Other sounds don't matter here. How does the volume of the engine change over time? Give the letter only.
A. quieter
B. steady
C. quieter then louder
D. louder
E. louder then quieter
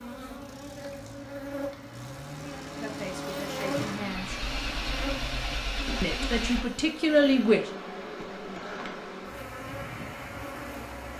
D.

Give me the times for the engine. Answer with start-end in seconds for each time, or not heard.
0.2-6.9.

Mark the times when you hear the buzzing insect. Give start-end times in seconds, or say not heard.
0.0-11.1.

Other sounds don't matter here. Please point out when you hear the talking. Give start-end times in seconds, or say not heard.
2.8-4.5, 6.0-7.7.